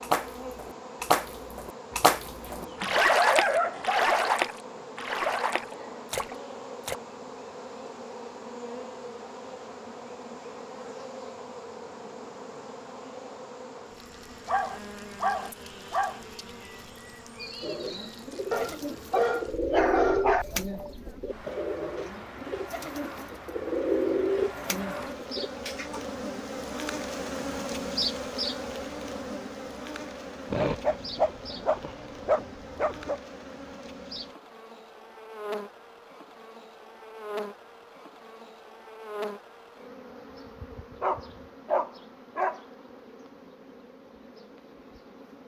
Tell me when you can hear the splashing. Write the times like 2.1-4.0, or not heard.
0.0-7.0.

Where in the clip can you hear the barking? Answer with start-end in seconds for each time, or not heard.
1.9-4.4, 14.4-16.2, 18.5-20.4, 30.5-33.2, 41.0-42.6.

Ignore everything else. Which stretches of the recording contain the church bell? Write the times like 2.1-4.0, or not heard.
not heard.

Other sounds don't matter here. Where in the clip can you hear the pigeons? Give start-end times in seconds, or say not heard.
17.6-26.0.